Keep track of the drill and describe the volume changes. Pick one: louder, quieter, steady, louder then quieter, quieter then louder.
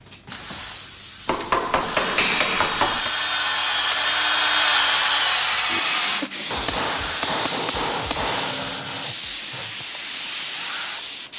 louder then quieter.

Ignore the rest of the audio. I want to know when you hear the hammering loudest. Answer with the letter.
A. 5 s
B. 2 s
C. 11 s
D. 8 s
B.